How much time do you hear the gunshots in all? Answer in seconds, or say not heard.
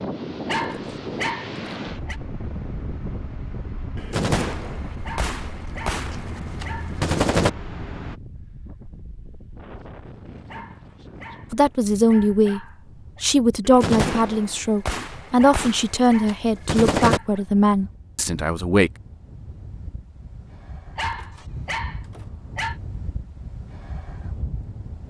7 s.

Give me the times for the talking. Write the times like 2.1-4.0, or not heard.
11.5-18.9.